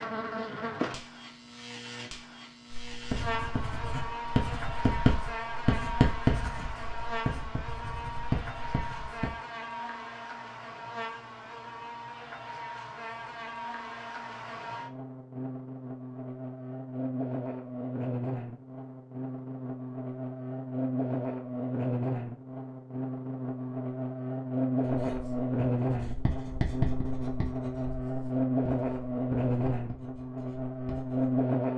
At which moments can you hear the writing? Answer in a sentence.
The writing can be heard from 2.9 to 9.3 s and from 24.8 to 31.2 s.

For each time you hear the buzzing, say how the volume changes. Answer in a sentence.
You can hear the buzzing from 0.0 to 31.7 s, getting louder.